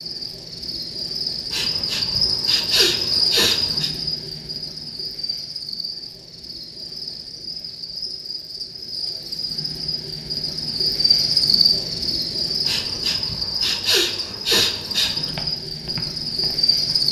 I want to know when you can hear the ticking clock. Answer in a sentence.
The ticking clock can't be heard in this clip.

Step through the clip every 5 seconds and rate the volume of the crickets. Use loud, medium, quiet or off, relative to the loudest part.
loud, medium, loud, loud.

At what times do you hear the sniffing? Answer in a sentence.
You can hear the sniffing from 1.5 to 3.9 s and from 12.7 to 15.3 s.